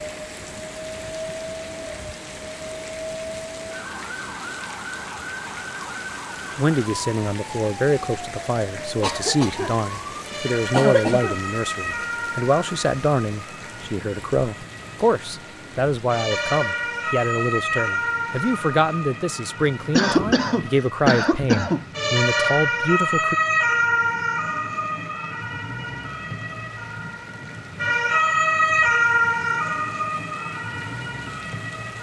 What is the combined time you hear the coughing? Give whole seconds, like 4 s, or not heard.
3 s.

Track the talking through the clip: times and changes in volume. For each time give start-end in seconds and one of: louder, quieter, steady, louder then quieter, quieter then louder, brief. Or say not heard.
6.5-23.4 steady.